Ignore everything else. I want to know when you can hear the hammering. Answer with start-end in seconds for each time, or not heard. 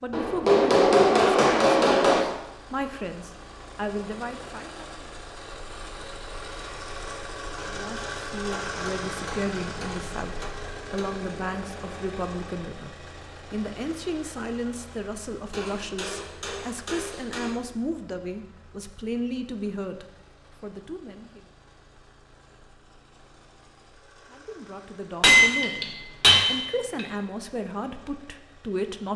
0.1-2.2, 8.5-11.2, 15.5-17.6, 25.2-27.1.